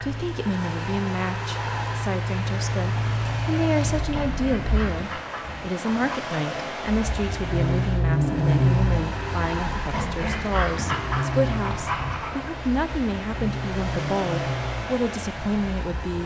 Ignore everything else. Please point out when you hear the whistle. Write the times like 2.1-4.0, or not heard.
not heard.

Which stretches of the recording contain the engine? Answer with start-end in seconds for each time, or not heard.
0.0-5.0, 6.8-16.2.